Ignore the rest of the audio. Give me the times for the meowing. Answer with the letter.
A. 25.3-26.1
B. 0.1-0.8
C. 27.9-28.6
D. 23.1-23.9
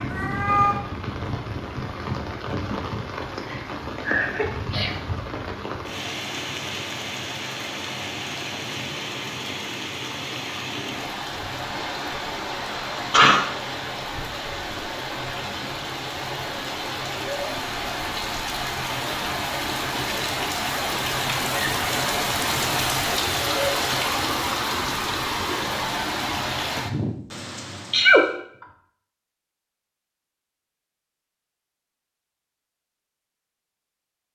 B.